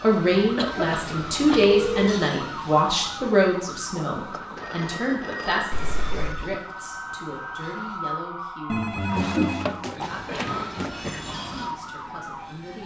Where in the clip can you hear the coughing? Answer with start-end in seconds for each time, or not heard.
0.6-1.6, 5.7-6.5, 9.2-11.2.